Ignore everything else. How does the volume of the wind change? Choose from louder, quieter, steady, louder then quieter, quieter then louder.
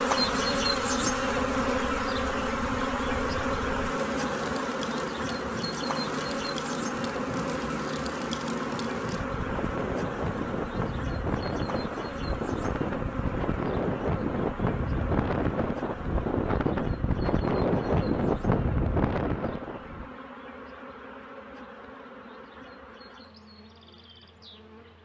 louder.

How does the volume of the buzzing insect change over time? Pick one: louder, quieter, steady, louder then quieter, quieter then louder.
quieter.